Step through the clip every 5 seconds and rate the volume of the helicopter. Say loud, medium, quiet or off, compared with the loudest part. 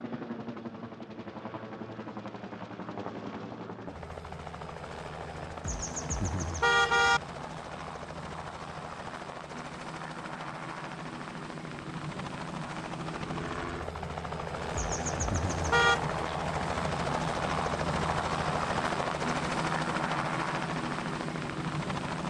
medium, medium, medium, loud, loud.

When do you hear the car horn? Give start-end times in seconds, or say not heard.
5.6-7.2, 14.7-16.0.